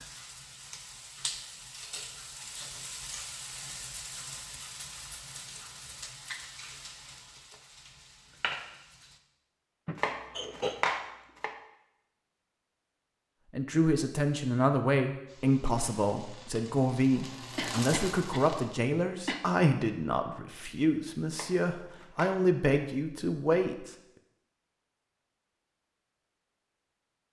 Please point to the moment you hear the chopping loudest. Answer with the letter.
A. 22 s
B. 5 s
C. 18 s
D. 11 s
D.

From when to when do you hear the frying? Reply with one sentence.
You can hear the frying from 0.0 to 9.2 s and from 15.2 to 18.8 s.